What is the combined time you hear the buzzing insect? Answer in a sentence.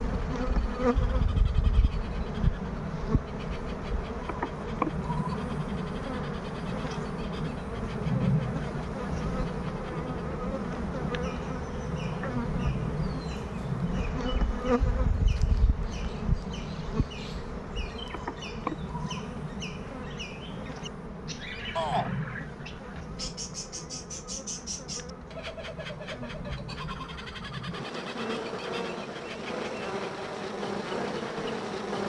The buzzing insect can be heard for 32 seconds in total.